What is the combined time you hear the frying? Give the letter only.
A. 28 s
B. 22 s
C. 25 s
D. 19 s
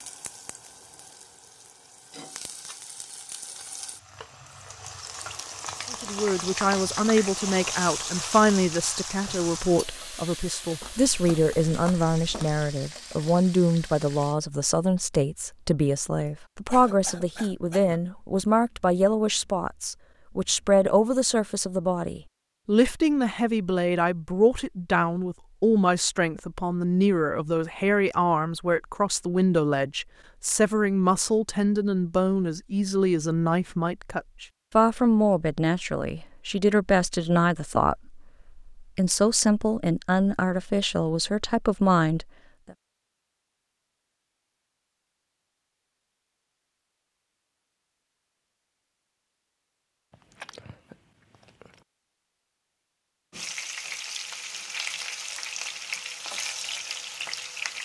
D.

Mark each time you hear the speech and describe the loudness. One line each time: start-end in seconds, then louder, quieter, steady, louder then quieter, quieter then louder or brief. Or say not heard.
5.9-42.2 steady.